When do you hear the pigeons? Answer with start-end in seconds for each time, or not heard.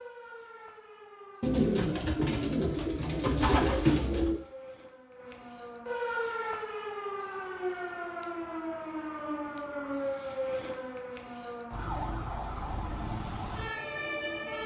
1.4-4.4.